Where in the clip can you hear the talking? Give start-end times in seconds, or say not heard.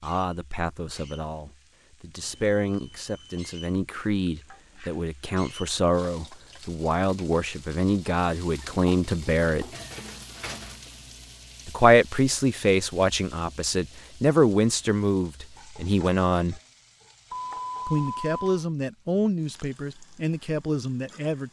0.0-9.7, 11.7-16.6, 17.9-21.4.